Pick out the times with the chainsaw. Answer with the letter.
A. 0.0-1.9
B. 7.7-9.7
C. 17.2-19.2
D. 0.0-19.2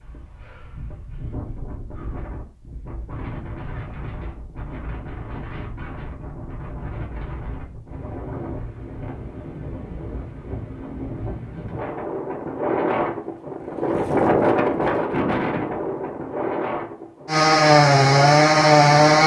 C.